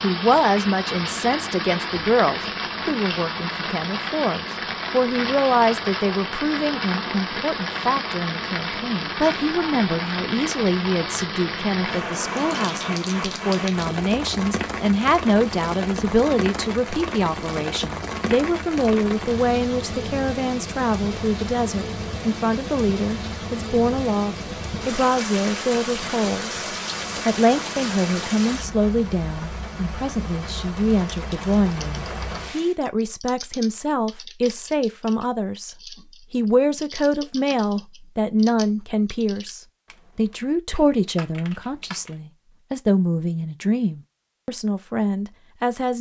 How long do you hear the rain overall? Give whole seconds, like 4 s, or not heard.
33 s.